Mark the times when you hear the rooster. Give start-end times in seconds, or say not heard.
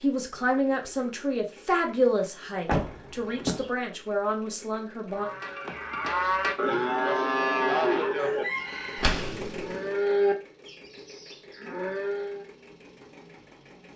8.2-9.2.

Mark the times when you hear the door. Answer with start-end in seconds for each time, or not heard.
2.6-3.7, 8.9-9.5.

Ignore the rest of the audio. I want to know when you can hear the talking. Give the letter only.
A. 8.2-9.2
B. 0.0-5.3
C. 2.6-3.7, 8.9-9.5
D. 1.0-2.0
B.